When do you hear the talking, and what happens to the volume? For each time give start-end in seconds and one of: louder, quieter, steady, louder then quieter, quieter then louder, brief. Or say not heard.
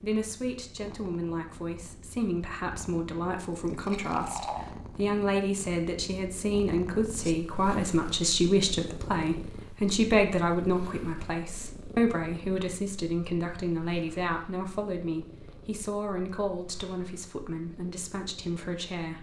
0.0-19.1 louder then quieter.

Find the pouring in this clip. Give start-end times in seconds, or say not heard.
3.5-4.8.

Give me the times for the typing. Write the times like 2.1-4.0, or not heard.
not heard.